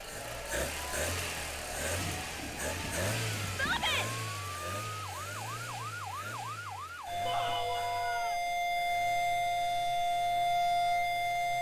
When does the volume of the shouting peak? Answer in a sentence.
The volume of the shouting peaks at 4 seconds.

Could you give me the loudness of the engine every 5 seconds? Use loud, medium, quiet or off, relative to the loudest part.
loud, medium, quiet.